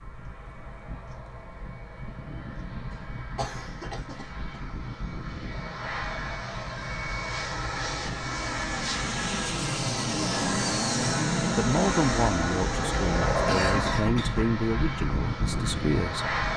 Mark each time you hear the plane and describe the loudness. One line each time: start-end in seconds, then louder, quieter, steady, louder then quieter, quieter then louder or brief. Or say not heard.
0.0-16.5 louder.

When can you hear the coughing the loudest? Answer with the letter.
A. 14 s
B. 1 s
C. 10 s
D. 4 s
A.